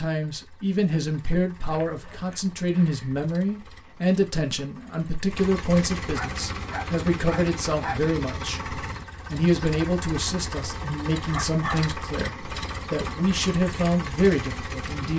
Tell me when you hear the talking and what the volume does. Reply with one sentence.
The talking can be heard from 0.0 to 15.1 s, at a steady volume.